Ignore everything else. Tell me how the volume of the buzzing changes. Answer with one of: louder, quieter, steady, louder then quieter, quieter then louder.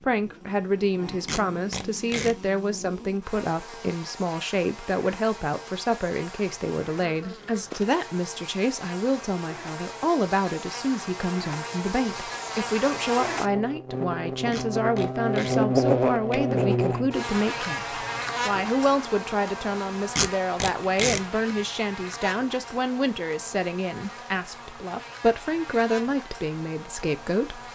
louder then quieter.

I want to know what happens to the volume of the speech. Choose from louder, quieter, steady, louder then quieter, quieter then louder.
steady.